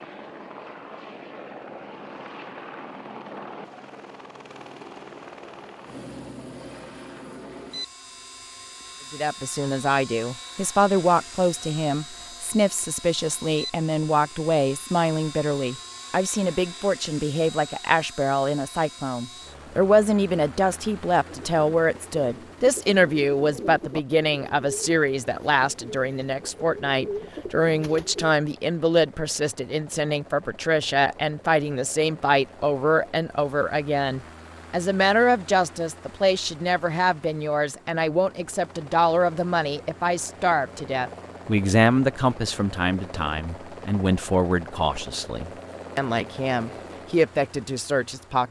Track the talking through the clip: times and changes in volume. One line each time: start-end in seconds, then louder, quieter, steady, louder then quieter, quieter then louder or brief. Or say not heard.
9.1-48.4 steady.